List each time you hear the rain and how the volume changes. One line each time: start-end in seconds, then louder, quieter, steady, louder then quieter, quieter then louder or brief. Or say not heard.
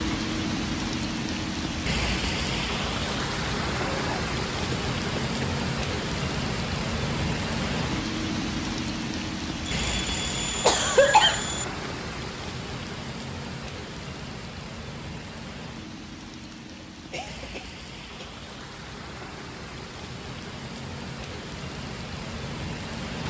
0.0-23.2 quieter.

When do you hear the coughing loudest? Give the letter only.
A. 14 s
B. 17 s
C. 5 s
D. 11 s
D.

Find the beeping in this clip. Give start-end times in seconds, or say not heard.
9.7-11.7.